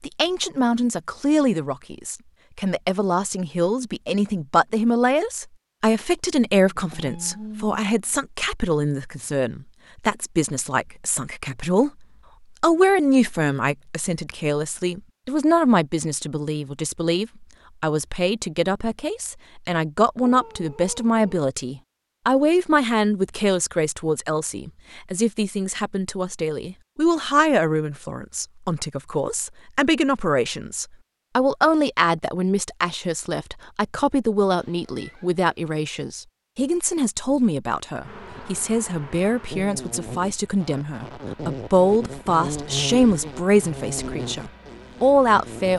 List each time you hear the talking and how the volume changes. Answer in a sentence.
You can hear the talking from 0.0 to 45.7 s, at a steady volume.